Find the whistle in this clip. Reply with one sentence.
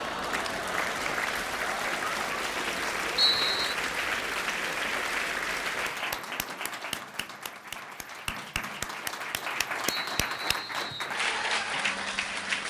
The whistle can be heard from 3.1 to 3.8 s and from 10.1 to 11.2 s.